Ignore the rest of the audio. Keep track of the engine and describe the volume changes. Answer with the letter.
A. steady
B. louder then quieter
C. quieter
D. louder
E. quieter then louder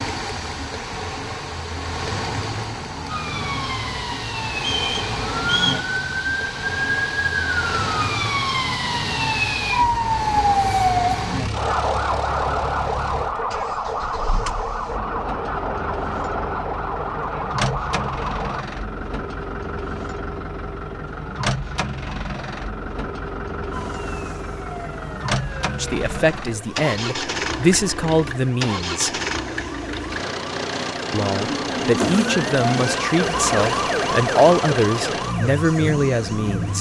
A.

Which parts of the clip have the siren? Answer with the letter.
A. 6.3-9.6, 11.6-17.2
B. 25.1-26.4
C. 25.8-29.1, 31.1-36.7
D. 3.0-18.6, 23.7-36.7
D.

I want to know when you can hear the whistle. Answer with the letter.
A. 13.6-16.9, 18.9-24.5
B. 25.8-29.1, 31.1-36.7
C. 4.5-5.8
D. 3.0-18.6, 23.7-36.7
C.